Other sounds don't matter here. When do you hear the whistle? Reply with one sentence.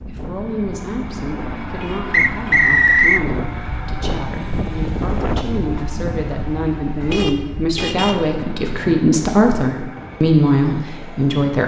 The whistle can be heard from 2.1 to 3.2 s.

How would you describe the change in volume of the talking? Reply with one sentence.
The volume of the talking goes up.